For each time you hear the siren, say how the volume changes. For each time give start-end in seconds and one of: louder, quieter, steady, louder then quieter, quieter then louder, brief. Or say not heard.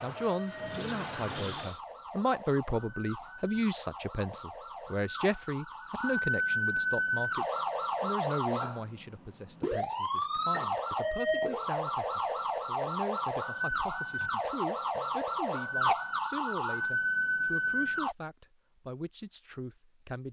0.0-18.1 louder.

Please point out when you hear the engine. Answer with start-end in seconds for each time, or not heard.
0.0-1.8.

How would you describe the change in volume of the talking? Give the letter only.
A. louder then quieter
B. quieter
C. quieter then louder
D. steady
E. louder
B.